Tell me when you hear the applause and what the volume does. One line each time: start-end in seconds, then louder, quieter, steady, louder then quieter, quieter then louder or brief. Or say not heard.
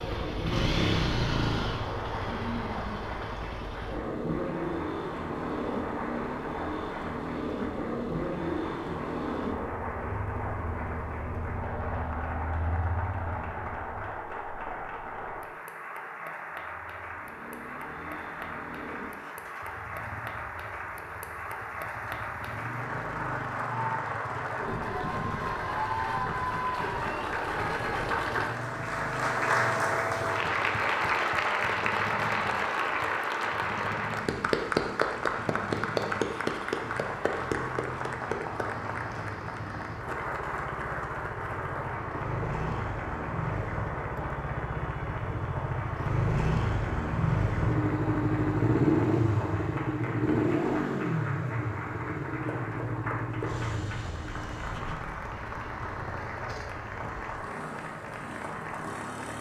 0.0-59.3 louder then quieter.